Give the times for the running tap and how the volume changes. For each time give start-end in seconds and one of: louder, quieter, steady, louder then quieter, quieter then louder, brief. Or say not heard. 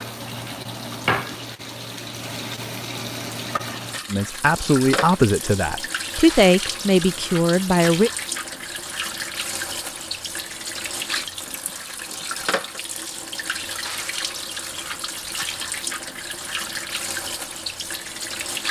0.0-18.6 steady.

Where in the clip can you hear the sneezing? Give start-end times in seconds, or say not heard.
not heard.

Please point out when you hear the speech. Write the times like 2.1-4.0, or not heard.
4.1-8.1.